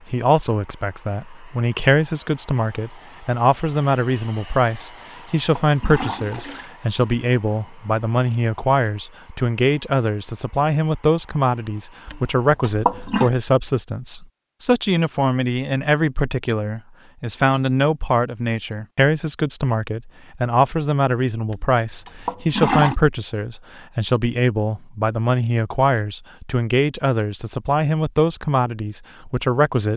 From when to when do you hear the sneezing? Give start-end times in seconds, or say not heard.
not heard.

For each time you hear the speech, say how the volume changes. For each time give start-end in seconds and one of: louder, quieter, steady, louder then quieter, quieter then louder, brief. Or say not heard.
0.1-29.9 steady.